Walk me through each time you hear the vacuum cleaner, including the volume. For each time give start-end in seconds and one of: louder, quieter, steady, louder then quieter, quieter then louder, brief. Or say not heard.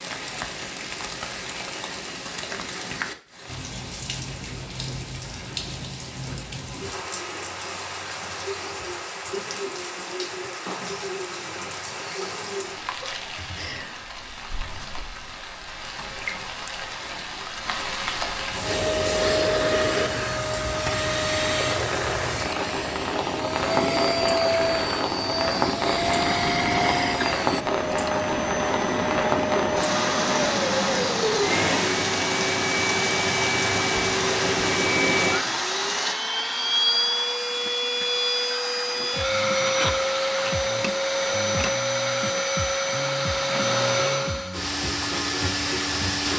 18.6-46.3 steady.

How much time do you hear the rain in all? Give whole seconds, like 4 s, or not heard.
36 s.